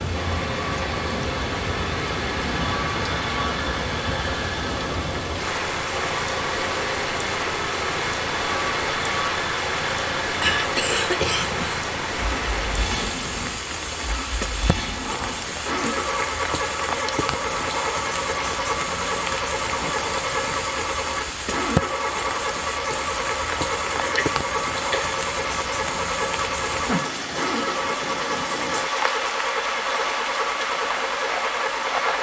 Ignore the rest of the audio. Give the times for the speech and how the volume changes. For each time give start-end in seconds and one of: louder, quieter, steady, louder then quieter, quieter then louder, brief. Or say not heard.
not heard.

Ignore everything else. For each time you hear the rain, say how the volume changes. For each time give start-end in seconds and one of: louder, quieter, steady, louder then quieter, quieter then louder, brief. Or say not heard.
0.0-32.1 steady.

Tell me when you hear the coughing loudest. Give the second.
11 s.